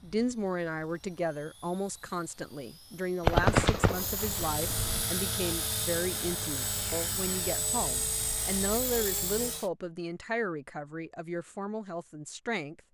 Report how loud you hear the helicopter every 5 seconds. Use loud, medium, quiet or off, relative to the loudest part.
medium, loud, off.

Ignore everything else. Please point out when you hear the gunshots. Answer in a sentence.
You can hear the gunshots from 3.2 to 5.0 s.